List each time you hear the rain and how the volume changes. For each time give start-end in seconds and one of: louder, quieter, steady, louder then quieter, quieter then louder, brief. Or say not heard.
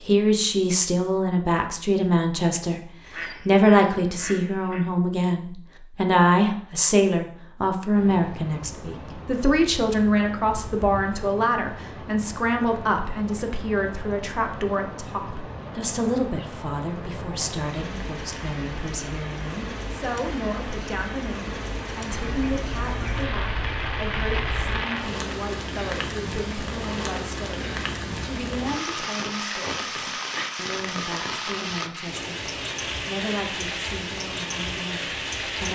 7.9-35.6 louder.